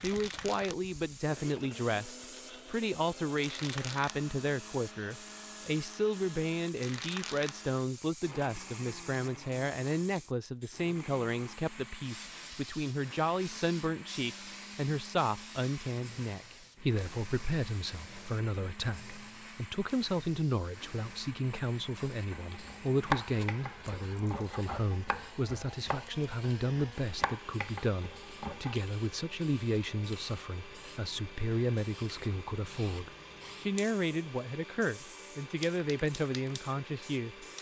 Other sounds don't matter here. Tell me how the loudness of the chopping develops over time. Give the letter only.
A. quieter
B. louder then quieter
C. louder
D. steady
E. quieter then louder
A.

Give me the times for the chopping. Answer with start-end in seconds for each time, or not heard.
22.0-28.9.